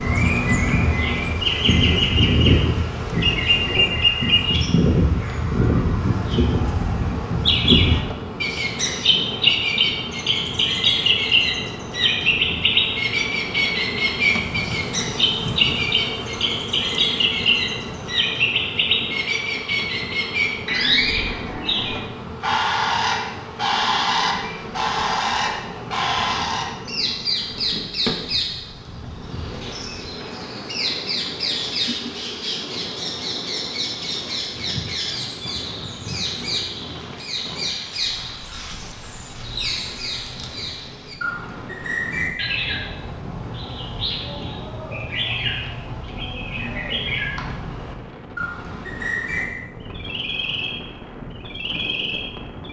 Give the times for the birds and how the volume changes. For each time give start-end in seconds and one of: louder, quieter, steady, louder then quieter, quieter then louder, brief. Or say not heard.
0.0-52.6 quieter.